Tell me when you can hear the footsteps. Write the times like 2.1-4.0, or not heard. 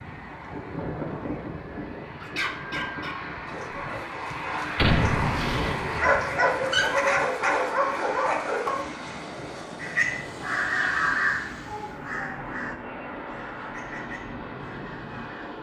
not heard.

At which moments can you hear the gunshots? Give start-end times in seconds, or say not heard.
4.8-6.1.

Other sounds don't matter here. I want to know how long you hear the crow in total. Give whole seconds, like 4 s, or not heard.
6 s.